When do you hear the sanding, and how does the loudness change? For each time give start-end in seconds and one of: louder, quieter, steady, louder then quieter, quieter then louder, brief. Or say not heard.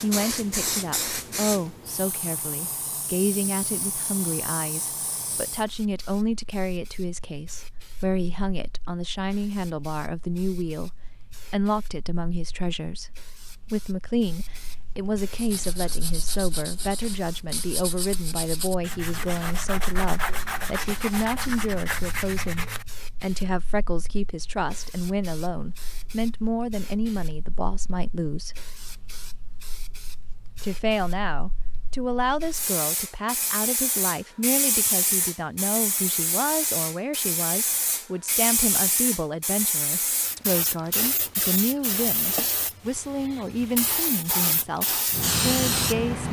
15.3-22.9 louder.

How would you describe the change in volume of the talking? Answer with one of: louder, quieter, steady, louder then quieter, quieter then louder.
steady.